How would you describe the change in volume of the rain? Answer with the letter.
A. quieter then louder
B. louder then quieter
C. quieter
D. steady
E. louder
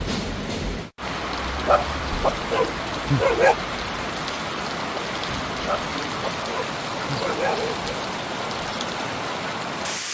D.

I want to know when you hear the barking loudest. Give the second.
3 s.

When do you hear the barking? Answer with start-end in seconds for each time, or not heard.
1.6-3.5, 5.7-7.9.